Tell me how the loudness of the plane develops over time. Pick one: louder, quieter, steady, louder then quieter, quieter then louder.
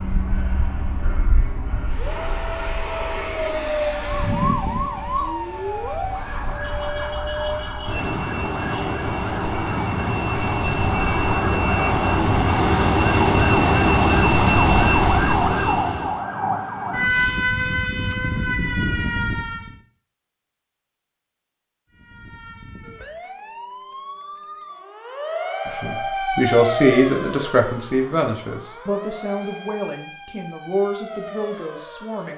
louder.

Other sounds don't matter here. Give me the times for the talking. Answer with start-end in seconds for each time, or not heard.
25.6-32.3.